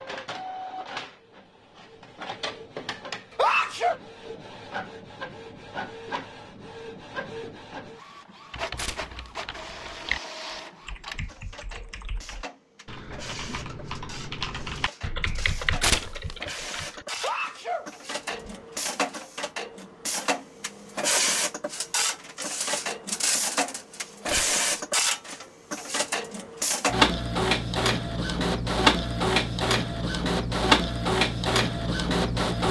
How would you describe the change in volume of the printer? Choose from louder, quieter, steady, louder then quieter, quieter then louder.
louder.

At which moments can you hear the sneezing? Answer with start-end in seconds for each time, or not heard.
3.4-4.0, 17.2-18.6.